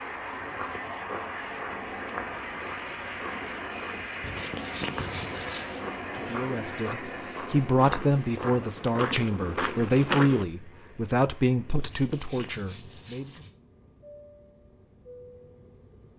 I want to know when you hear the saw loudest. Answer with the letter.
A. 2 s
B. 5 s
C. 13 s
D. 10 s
B.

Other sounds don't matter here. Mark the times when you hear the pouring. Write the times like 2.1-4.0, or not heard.
not heard.